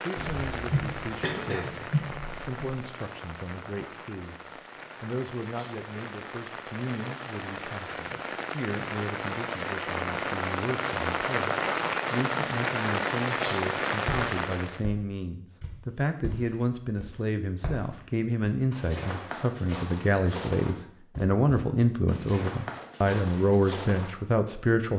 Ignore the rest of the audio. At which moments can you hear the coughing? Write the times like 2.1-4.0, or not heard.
0.1-2.5.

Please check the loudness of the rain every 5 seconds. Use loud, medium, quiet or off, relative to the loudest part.
medium, medium, loud, off, off.